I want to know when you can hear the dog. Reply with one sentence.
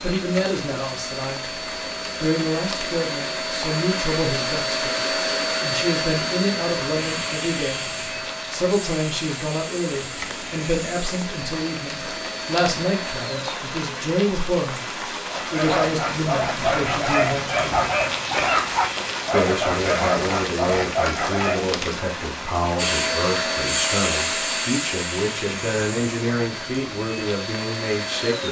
The dog can be heard from 15.3 to 21.7 s.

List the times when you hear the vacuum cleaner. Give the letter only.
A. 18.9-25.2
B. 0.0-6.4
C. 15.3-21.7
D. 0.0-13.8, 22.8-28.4
D.